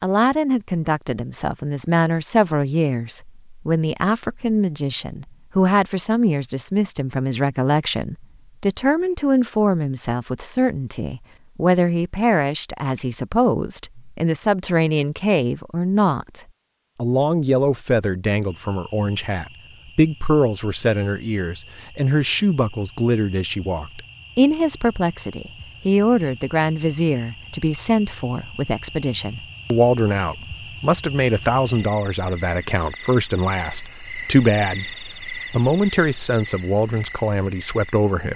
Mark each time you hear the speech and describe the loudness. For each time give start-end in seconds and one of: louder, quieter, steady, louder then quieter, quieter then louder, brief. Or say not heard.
0.0-38.3 steady.